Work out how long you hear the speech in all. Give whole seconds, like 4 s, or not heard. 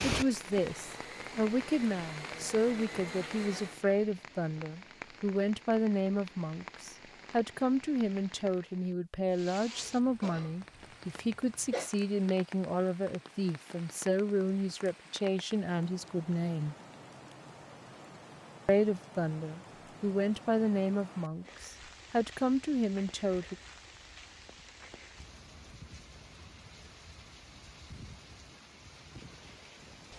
22 s.